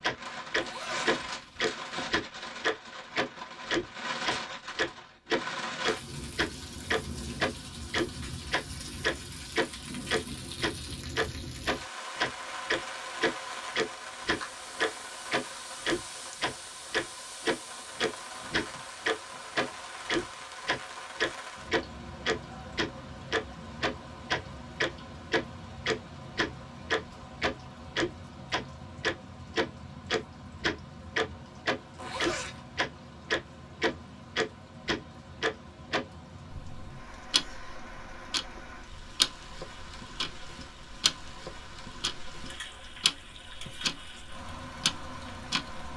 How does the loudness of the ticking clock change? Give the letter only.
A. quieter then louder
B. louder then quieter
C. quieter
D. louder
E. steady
C.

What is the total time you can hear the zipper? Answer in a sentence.
The zipper can be heard for 2 seconds in total.